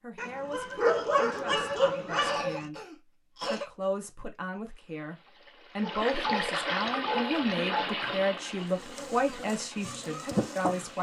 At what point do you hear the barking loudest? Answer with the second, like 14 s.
1 s.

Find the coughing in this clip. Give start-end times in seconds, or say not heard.
2.2-3.6.